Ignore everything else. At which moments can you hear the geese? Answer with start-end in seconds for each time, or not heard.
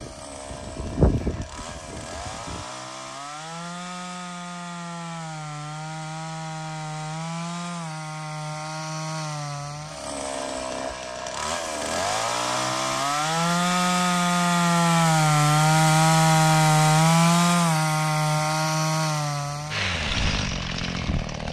0.0-2.7.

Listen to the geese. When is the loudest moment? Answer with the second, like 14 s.
1 s.